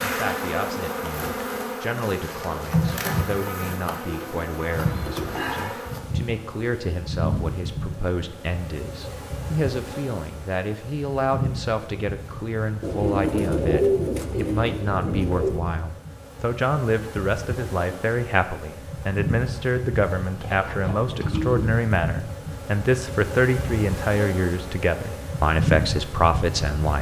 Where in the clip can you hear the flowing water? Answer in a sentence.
The flowing water can't be heard in this clip.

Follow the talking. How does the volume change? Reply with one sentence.
The volume of the talking goes up.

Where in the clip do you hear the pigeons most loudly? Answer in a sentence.
The loudest moment of the pigeons is at 14 seconds.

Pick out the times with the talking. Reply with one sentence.
You can hear the talking from 0.0 to 26.9 s.